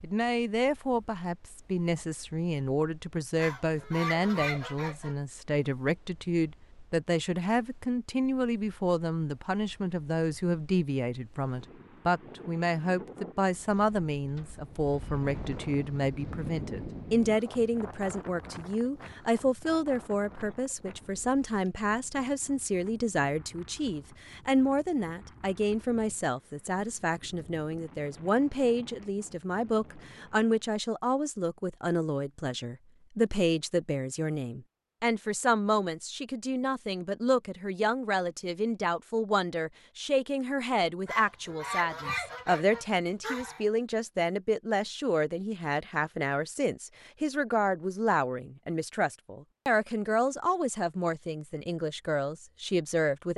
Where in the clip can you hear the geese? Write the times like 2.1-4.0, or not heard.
3.4-5.2, 41.0-43.6.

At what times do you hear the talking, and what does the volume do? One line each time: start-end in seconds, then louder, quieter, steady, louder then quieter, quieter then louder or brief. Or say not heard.
0.0-53.3 steady.